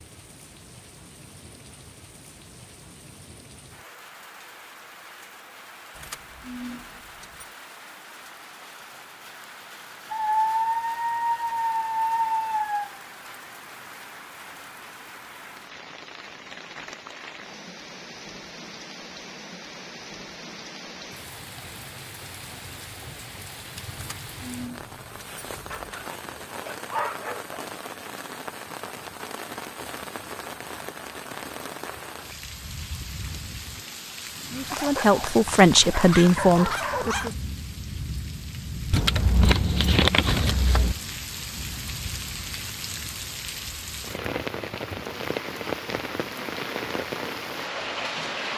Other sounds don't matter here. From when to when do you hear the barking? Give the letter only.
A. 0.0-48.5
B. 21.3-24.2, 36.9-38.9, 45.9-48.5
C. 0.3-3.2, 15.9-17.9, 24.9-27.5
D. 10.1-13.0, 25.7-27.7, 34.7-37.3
D.